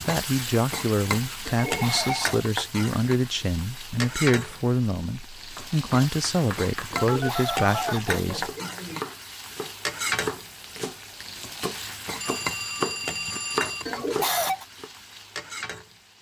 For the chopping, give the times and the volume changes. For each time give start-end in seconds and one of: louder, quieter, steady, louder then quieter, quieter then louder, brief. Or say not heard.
5.5-14.9 louder.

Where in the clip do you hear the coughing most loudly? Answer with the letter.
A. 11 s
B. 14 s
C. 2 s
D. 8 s
B.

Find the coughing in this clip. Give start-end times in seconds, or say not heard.
1.4-2.5, 7.1-9.1, 13.8-14.7.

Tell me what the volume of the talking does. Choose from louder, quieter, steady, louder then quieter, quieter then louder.
steady.